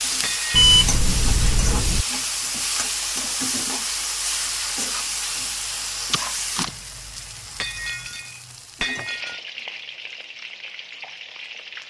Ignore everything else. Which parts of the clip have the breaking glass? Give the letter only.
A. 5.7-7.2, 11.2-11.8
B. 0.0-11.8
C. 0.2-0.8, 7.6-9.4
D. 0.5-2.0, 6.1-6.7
C.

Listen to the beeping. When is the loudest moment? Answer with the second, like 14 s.
1 s.